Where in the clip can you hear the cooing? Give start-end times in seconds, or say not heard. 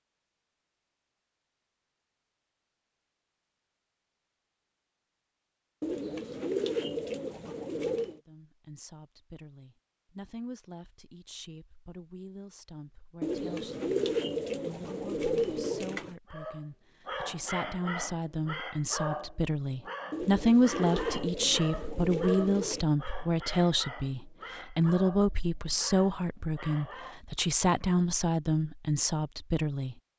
5.8-8.2, 13.2-16.1, 20.1-22.9.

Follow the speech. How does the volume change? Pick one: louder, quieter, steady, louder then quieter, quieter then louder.
louder.